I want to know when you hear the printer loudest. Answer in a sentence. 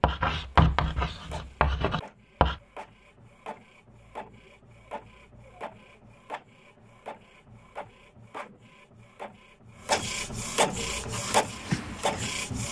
The volume of the printer peaks at 11 seconds.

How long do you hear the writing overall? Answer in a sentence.
You can hear the writing for 4 seconds altogether.